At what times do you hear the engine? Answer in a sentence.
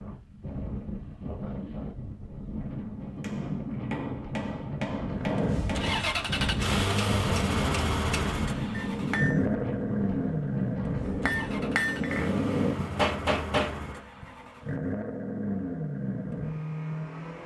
You can hear the engine from 5.0 to 17.4 s.